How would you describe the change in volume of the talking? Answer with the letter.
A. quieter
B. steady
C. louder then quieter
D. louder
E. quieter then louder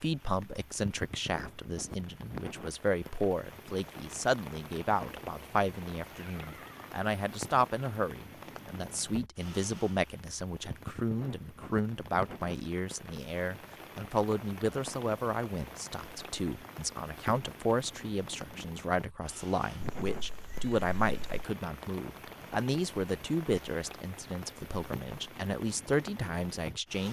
B.